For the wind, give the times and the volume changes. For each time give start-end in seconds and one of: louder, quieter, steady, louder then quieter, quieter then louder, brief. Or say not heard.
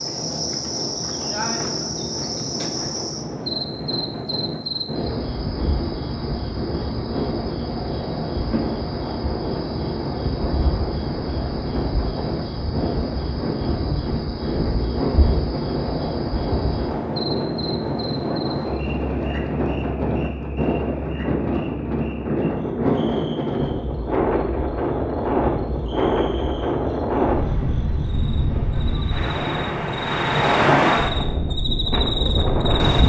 0.0-33.0 louder.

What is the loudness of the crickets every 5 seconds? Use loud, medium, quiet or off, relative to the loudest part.
loud, loud, loud, medium, quiet, quiet, loud.